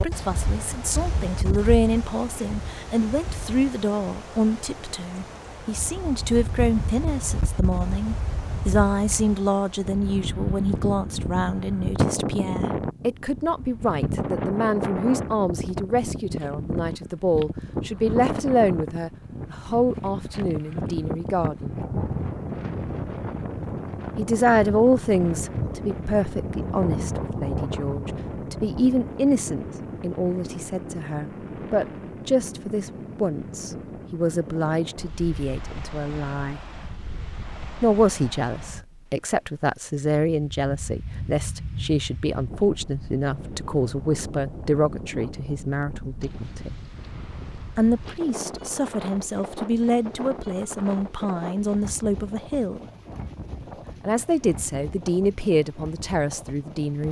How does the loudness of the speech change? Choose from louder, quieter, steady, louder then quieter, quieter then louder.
steady.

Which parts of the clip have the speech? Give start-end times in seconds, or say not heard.
0.0-21.8, 24.1-36.6, 37.8-46.8, 47.8-52.8, 53.6-57.0.